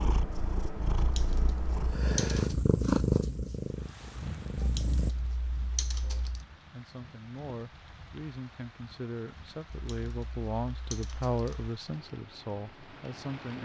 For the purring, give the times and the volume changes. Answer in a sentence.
You can hear the purring from 0.0 to 5.1 s, getting louder then quieter.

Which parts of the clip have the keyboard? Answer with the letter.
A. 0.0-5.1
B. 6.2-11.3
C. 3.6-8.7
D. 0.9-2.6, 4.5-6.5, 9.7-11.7
D.